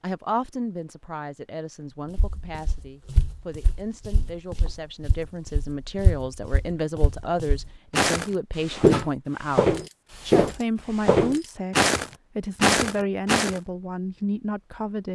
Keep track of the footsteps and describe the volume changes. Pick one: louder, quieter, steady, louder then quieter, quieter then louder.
louder.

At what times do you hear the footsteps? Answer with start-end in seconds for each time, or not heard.
2.1-13.6.